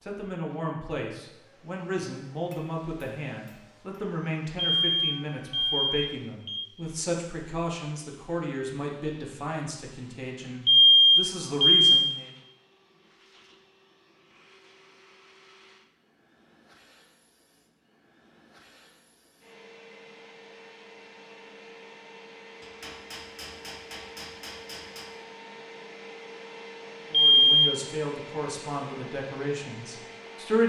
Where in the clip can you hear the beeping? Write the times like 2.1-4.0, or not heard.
4.5-6.6, 10.7-12.2, 27.1-27.7.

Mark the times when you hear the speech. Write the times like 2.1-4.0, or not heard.
0.0-12.3, 27.1-30.6.